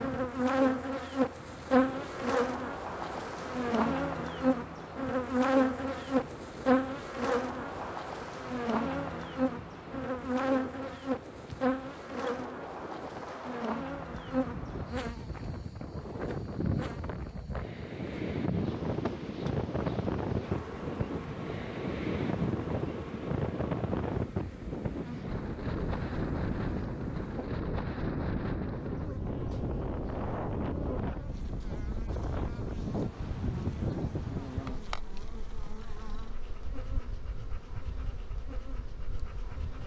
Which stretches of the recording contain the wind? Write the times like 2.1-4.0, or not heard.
0.0-39.7.